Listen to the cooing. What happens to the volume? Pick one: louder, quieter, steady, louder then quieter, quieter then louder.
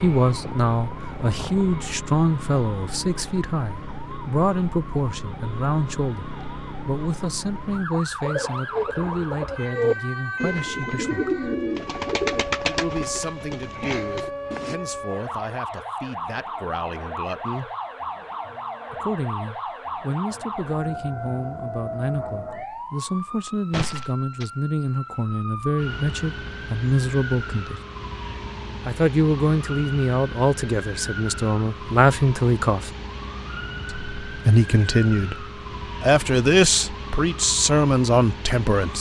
louder then quieter.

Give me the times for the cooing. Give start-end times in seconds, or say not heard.
8.2-14.8.